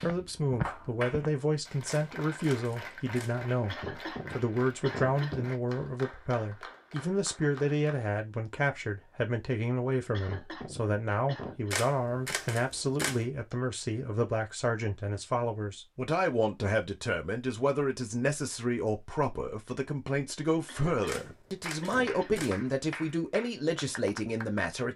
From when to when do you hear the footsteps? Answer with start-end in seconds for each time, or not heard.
0.0-1.4.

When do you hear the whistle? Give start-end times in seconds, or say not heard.
not heard.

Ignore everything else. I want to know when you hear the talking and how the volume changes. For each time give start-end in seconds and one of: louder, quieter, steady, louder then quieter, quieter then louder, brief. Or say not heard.
0.0-24.9 steady.